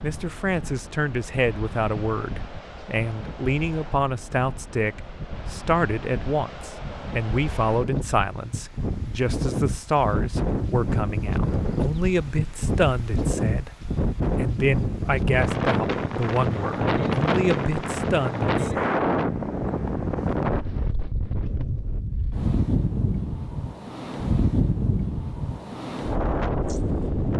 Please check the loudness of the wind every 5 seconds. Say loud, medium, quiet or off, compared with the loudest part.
quiet, medium, loud, loud, loud, loud.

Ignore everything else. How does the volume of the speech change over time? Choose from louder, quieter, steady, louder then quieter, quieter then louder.
steady.